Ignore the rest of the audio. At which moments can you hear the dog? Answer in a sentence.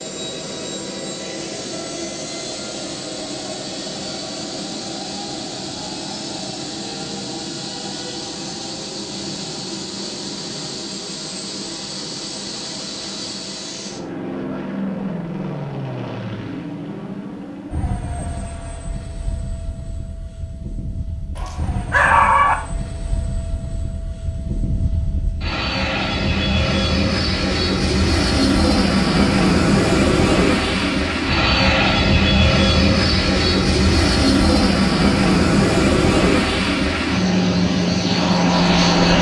You can hear the dog from 21.4 to 22.6 s.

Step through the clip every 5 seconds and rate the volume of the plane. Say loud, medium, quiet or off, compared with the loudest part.
quiet, quiet, quiet, quiet, quiet, loud, loud, loud.